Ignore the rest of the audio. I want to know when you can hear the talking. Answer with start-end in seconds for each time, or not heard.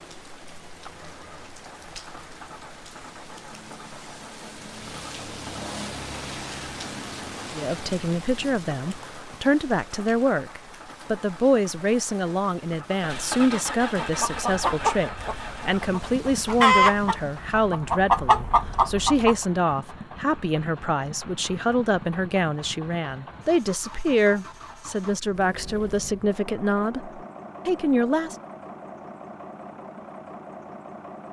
7.5-28.4.